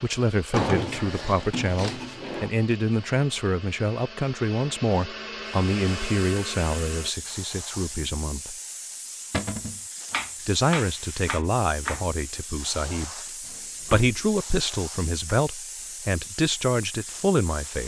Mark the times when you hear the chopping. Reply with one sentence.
You can hear the chopping from 10.1 to 12.1 s.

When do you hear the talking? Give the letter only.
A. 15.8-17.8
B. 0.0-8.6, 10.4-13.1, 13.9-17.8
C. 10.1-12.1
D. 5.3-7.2
B.